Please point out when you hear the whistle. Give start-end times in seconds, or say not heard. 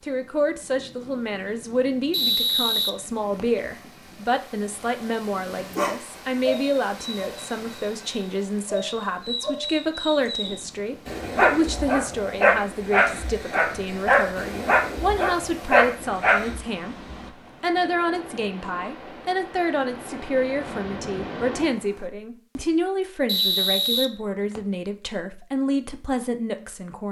2.1-3.6, 23.2-24.6.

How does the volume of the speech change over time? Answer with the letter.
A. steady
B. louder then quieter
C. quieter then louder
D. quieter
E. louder
A.